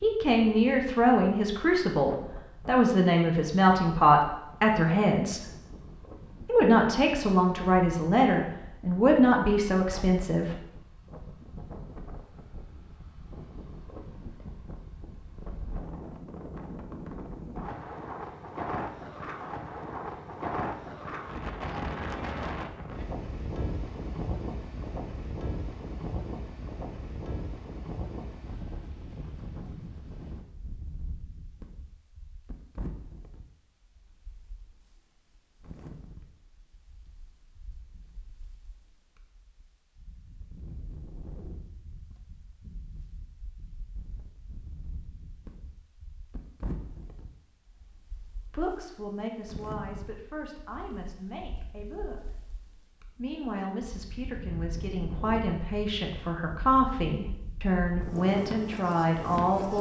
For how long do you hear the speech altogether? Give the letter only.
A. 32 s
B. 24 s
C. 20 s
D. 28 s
C.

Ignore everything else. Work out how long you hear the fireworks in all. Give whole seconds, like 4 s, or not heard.
not heard.